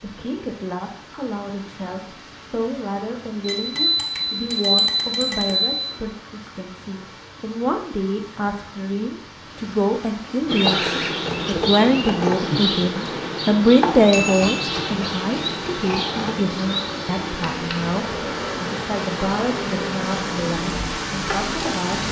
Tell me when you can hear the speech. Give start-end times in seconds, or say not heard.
0.0-22.0.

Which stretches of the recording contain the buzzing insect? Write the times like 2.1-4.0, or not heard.
10.4-21.9.